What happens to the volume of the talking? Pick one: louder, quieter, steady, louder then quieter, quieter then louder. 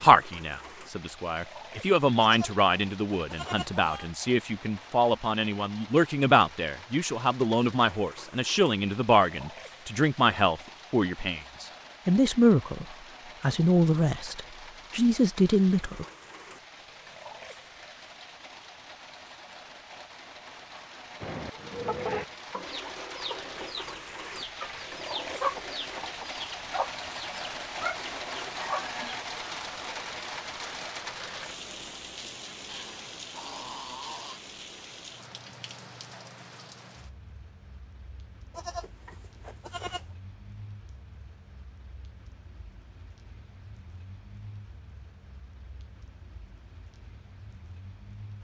steady.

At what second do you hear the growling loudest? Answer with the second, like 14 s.
34 s.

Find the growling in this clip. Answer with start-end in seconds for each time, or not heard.
32.6-34.4.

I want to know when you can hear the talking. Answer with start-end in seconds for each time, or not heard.
0.0-16.1.